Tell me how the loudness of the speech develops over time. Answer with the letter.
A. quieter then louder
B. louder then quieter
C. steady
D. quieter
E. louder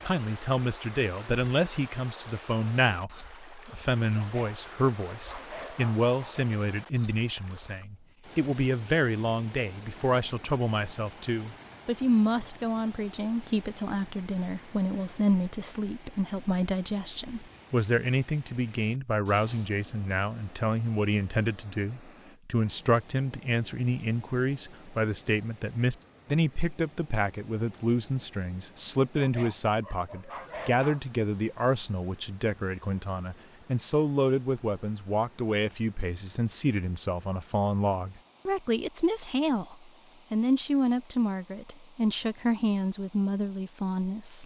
C.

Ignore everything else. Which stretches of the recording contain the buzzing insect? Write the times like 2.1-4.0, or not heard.
not heard.